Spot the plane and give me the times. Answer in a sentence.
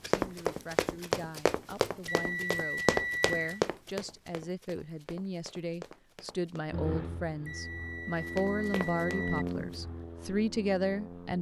You can hear the plane from 6.7 to 11.3 s.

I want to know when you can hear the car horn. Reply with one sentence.
The car horn can't be heard in this clip.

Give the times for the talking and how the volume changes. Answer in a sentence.
You can hear the talking from 0.1 to 11.3 s, getting louder.